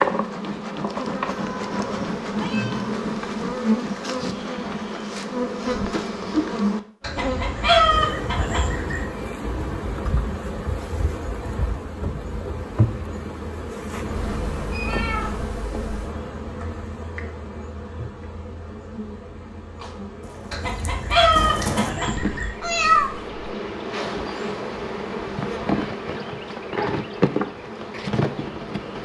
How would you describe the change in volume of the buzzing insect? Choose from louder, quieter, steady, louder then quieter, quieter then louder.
quieter then louder.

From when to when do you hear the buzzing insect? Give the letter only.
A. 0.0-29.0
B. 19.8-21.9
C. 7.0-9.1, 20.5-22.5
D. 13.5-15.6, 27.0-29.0
A.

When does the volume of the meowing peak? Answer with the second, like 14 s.
23 s.